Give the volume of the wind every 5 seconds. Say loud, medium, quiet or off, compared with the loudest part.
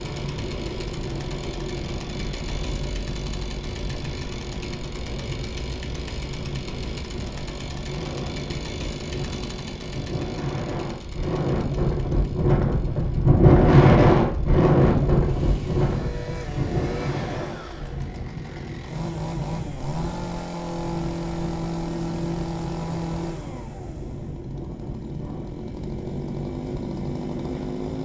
quiet, quiet, loud, medium, quiet, quiet.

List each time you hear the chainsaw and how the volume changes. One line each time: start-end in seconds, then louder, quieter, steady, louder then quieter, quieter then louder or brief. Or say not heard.
0.0-28.0 quieter then louder.